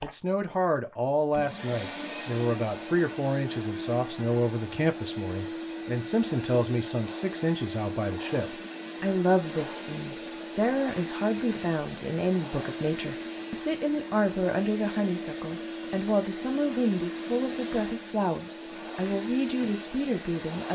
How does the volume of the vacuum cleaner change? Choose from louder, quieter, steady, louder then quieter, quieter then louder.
steady.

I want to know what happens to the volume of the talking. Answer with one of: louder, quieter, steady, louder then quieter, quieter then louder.
steady.